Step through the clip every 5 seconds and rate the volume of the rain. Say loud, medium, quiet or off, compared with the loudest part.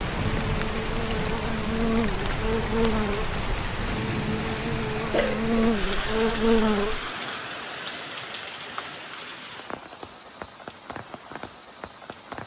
loud, loud, medium.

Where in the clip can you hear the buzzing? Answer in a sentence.
You can hear the buzzing from 0.1 to 7.1 s.